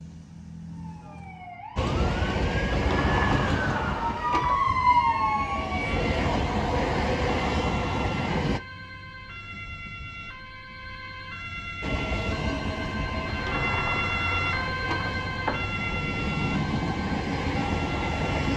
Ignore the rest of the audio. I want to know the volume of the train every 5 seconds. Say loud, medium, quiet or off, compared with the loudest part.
loud, loud, medium, loud.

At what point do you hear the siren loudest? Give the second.
5 s.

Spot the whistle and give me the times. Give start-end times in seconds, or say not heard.
not heard.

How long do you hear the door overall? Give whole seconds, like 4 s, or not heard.
4 s.